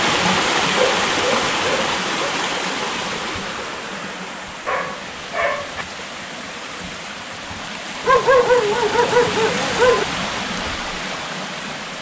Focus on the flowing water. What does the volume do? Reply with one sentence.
The volume of the flowing water goes down, then up.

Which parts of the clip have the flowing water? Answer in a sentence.
You can hear the flowing water from 0.0 to 11.9 s.